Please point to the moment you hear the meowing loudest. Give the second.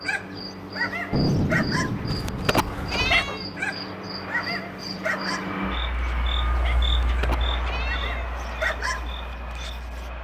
3 s.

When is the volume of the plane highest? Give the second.
6 s.